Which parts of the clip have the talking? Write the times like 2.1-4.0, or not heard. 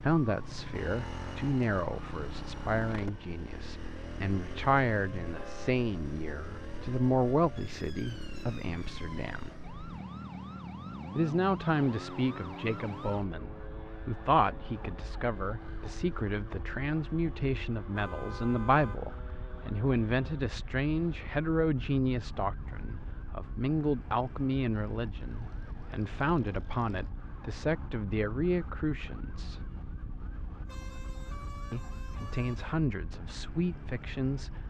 0.0-9.6, 11.2-29.7, 31.7-34.5.